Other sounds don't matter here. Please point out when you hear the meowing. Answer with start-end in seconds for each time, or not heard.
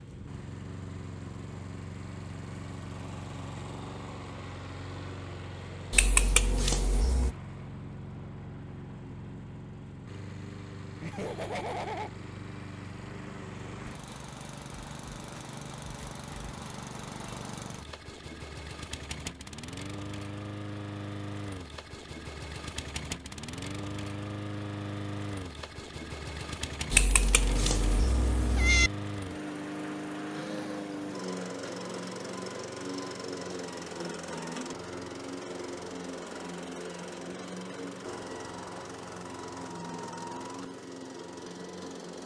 5.9-7.3, 26.9-28.9.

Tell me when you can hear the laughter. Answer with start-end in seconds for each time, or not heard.
11.0-12.1.